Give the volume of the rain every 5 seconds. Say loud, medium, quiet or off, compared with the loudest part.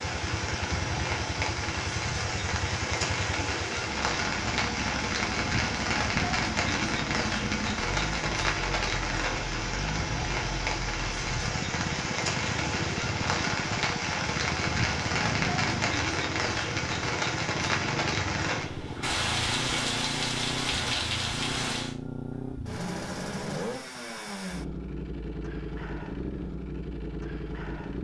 loud, loud, loud, loud, loud, off.